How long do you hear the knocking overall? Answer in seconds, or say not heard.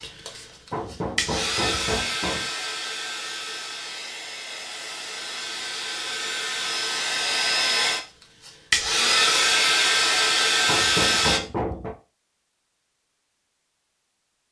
3 s.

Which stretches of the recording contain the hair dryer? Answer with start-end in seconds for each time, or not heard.
0.0-11.4.